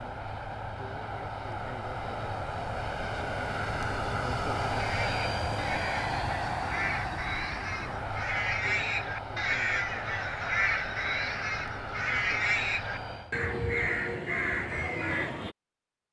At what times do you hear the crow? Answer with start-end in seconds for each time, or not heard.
4.8-15.6.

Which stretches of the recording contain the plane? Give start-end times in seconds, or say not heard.
0.0-13.4.